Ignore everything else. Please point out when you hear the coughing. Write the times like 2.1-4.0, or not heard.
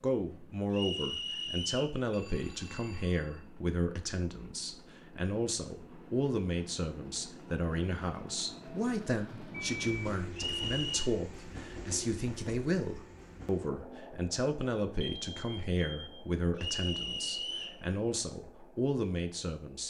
not heard.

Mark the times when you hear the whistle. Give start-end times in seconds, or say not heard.
0.7-2.0, 10.3-11.1, 16.6-17.8.